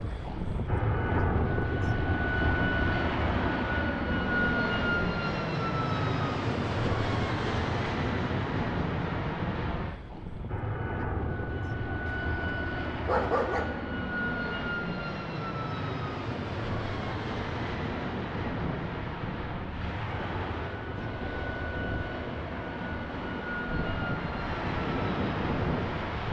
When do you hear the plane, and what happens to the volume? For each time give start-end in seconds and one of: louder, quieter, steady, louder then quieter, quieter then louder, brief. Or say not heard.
0.0-26.2 quieter.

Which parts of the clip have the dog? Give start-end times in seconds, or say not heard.
12.9-13.7.